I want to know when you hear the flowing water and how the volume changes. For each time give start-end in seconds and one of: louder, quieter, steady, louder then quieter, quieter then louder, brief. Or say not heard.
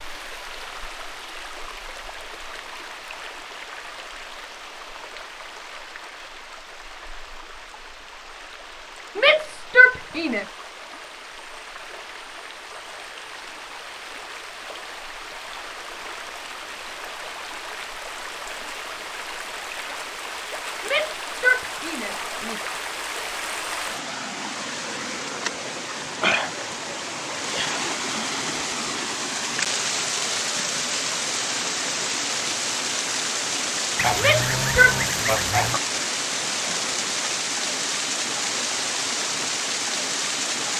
0.0-40.7 louder.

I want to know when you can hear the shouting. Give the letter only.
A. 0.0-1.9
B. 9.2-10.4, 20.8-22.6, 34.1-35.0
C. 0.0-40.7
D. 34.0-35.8
B.